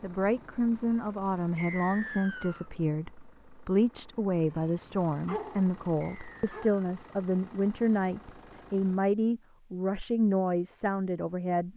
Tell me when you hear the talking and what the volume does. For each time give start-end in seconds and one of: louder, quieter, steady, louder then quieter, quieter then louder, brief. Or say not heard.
0.0-11.7 steady.